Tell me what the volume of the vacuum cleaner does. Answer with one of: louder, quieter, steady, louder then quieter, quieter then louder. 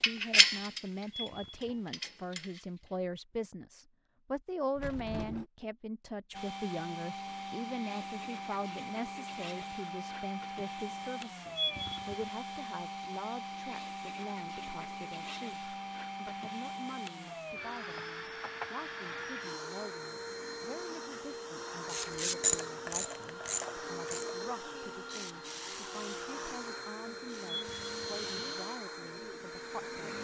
steady.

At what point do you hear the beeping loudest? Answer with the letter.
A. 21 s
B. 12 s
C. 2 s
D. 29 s
B.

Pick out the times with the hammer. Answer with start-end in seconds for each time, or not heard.
not heard.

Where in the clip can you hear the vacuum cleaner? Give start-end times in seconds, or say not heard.
6.3-30.1.